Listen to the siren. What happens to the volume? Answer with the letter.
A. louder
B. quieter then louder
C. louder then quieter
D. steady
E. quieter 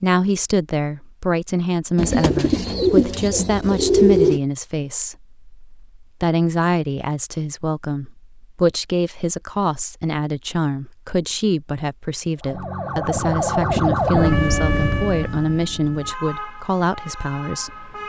E.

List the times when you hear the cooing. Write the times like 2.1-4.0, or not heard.
1.9-4.4.